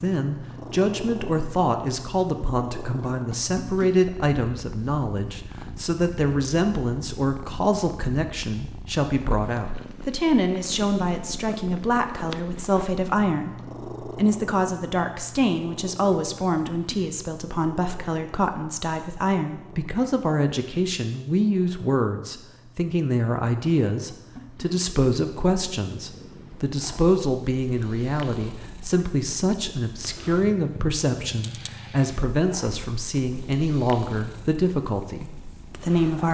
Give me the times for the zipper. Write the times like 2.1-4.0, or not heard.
not heard.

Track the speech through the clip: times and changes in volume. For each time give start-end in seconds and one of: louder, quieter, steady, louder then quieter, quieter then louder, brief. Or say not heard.
0.0-36.2 steady.